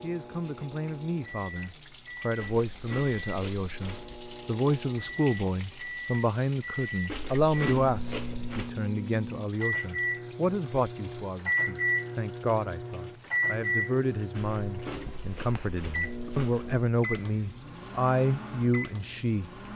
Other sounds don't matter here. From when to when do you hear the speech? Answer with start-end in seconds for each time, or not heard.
0.0-19.5.